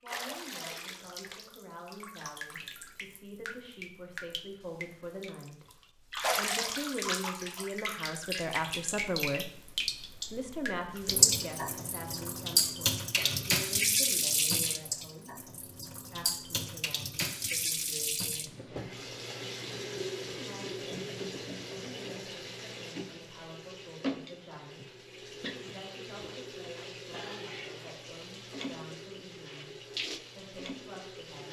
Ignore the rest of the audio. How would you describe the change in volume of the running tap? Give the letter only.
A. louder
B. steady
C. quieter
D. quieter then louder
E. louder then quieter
E.